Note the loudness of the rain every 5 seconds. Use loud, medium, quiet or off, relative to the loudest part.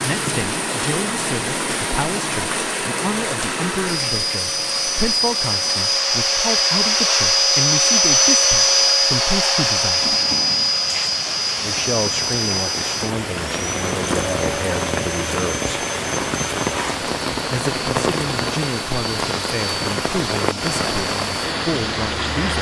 loud, medium, loud, loud, loud.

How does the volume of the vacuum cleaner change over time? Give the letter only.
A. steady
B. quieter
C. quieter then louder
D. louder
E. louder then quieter
E.